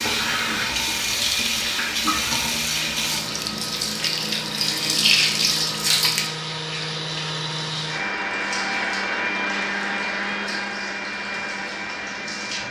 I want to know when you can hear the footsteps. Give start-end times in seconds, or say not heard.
not heard.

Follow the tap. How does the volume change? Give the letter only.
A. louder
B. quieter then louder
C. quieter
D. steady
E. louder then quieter
C.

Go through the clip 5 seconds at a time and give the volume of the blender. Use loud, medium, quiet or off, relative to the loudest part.
medium, loud, loud.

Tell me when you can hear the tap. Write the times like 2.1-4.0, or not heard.
0.0-12.6.